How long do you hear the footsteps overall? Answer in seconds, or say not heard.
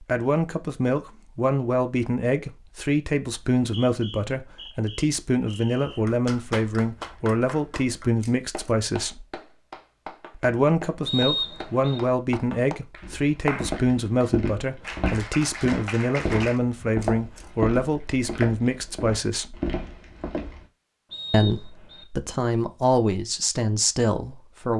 8 s.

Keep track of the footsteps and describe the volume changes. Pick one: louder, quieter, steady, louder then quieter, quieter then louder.
steady.